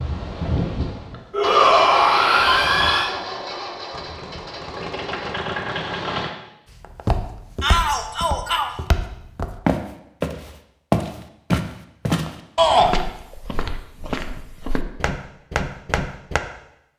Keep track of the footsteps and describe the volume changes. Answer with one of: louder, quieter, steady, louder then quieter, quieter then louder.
louder then quieter.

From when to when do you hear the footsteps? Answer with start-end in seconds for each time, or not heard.
6.8-16.4.